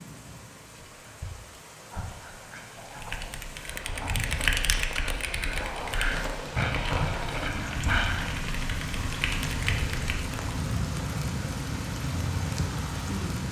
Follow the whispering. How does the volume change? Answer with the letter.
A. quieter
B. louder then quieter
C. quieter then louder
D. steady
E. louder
E.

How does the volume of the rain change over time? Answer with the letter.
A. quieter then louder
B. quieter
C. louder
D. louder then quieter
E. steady
C.